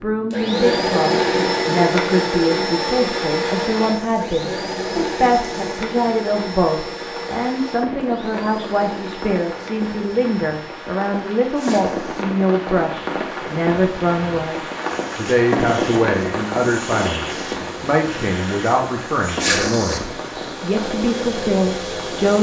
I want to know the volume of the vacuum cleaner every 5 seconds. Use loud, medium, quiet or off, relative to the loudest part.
loud, medium, quiet, medium, medium.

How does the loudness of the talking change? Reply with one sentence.
The loudness of the talking stays about the same.